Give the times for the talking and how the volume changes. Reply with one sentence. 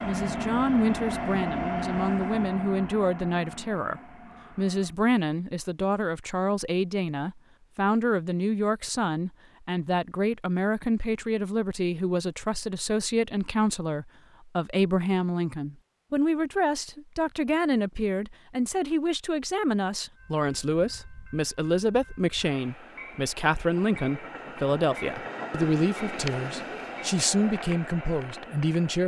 You can hear the talking from 0.0 to 29.0 s, at a steady volume.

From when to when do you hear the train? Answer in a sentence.
You can hear the train from 0.0 to 5.0 s and from 20.1 to 29.0 s.